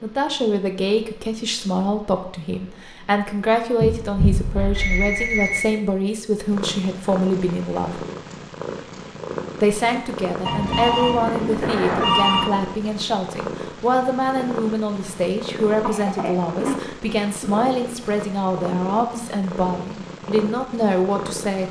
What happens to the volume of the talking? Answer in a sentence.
The loudness of the talking stays about the same.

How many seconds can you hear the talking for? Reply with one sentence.
The talking can be heard for 20 seconds in total.